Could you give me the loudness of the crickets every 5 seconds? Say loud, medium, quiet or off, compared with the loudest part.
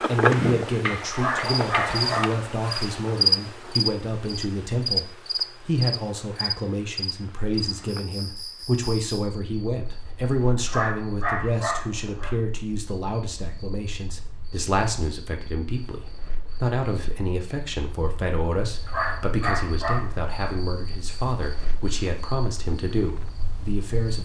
loud, medium, quiet, quiet, quiet.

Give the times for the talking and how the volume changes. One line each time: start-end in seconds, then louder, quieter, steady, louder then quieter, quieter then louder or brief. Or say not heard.
0.1-24.2 steady.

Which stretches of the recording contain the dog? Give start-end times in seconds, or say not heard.
1.1-2.9, 10.7-12.3, 18.9-20.6.